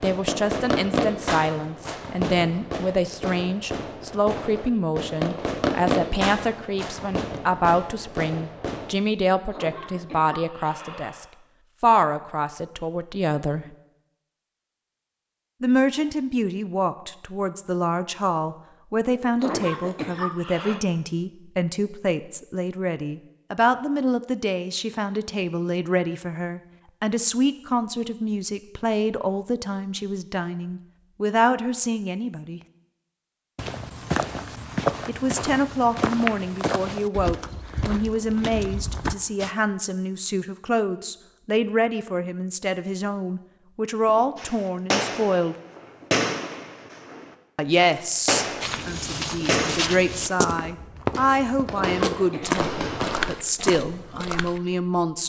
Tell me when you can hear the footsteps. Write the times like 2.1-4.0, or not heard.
33.5-39.5, 48.6-54.6.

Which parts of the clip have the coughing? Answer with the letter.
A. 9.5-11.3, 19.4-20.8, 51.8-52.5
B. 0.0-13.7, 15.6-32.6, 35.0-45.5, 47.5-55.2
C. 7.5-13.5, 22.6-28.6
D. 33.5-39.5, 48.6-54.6
A.